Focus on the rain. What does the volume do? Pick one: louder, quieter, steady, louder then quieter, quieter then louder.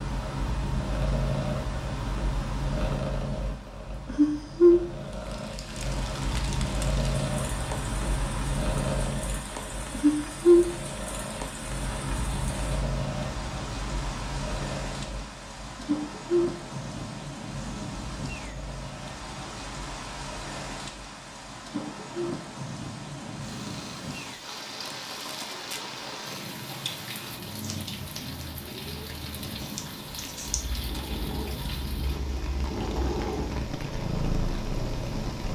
steady.